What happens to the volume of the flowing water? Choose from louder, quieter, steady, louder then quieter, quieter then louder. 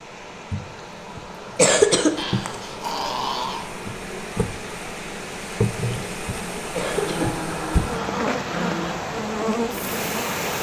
louder.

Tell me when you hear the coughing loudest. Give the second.
2 s.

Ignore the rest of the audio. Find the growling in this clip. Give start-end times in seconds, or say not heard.
2.1-3.6, 6.9-8.9.